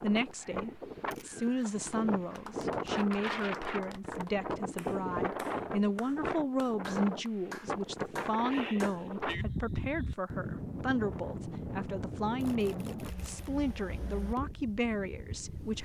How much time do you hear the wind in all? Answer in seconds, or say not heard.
16 s.